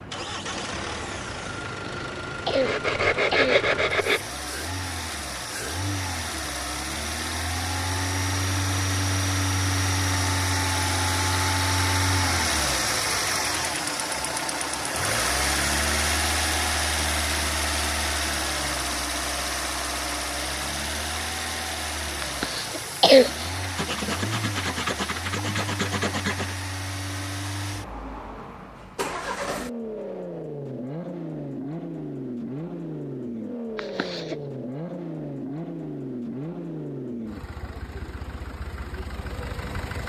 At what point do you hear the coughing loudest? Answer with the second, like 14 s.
23 s.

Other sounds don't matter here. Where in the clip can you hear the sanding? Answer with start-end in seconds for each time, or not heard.
2.5-4.2, 23.8-26.6.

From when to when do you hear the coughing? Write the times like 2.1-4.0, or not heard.
1.6-3.6, 22.2-23.6, 33.8-34.4.